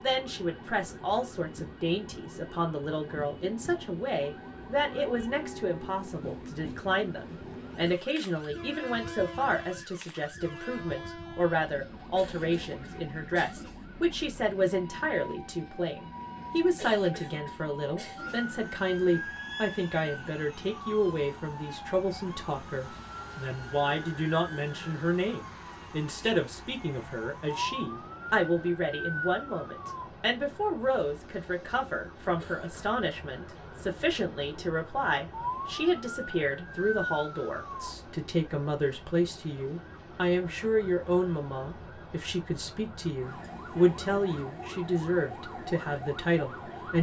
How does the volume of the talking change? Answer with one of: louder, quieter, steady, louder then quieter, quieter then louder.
steady.